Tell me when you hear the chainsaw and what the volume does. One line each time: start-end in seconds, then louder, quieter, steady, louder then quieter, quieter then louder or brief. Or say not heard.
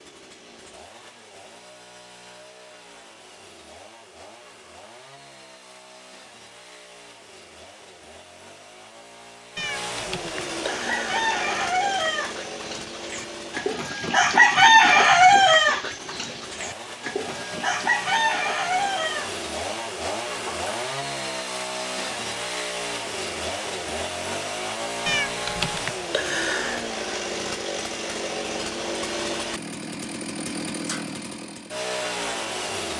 0.0-32.9 louder.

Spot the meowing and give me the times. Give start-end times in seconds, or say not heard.
9.6-11.2, 25.1-26.9.